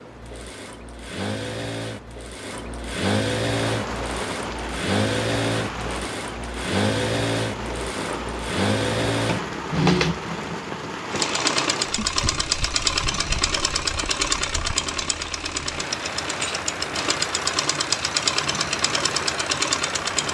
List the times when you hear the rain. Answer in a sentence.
The rain can be heard from 3.5 to 20.2 s.